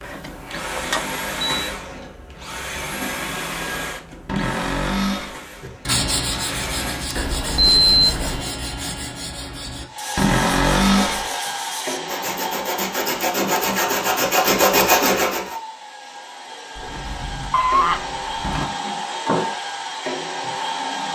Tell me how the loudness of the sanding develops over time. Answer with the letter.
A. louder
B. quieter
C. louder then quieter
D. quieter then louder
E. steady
D.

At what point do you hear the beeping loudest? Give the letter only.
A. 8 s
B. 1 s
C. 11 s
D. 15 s
A.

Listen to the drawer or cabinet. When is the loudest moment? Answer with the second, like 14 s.
11 s.